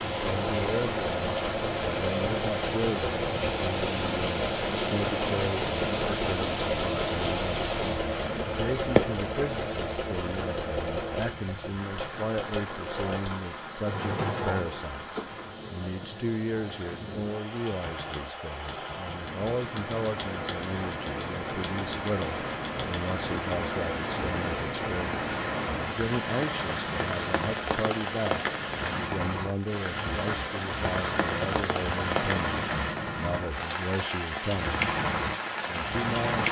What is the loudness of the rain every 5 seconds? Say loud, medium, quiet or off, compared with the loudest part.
loud, loud, medium, medium, loud, loud, loud, loud.